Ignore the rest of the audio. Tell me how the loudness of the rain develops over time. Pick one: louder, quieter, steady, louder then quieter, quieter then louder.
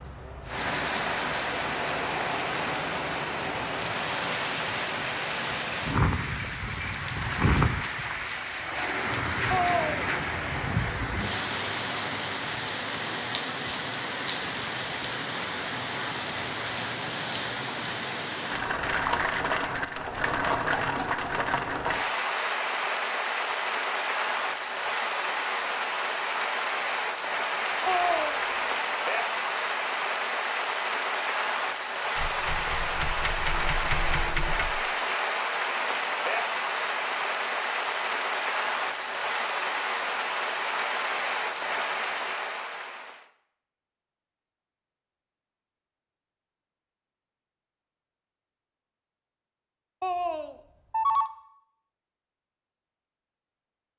steady.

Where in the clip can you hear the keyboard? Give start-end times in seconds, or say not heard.
32.1-34.8.